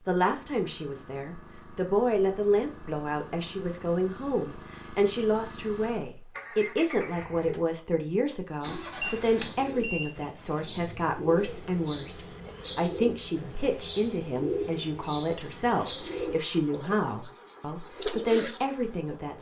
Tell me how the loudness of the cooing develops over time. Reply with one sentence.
The volume of the cooing goes up.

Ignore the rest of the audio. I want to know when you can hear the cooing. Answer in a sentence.
The cooing can be heard from 8.6 to 19.2 s.